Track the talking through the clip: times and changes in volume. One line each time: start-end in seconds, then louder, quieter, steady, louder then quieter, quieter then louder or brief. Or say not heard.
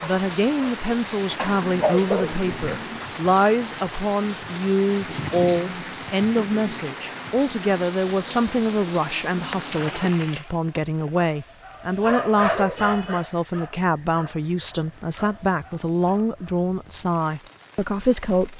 0.0-18.5 steady.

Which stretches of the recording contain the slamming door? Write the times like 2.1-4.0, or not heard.
not heard.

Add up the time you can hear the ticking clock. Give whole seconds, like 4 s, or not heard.
not heard.